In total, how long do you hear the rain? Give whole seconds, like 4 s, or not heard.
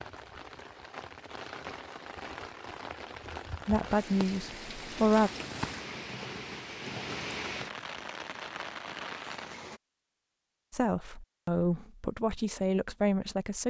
10 s.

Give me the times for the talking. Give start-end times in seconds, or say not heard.
3.6-5.3, 10.7-13.6.